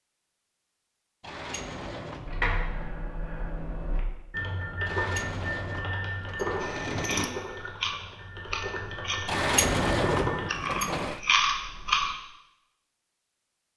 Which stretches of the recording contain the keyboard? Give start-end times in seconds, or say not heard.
2.2-10.6.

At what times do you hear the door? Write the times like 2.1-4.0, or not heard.
1.2-2.4, 4.8-7.4, 9.2-11.2.